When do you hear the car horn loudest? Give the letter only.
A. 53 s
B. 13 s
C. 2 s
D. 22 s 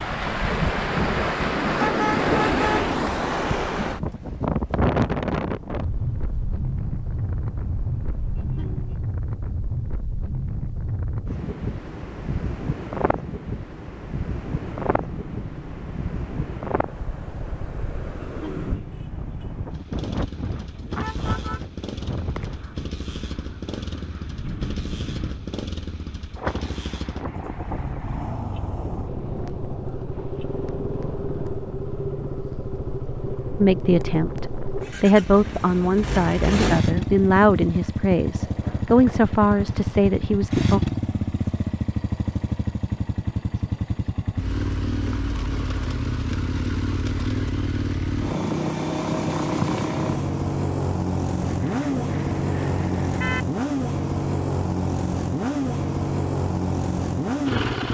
C.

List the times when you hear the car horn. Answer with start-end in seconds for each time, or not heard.
1.8-2.8, 20.8-22.6, 51.5-53.5.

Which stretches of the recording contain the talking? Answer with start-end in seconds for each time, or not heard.
33.5-40.8.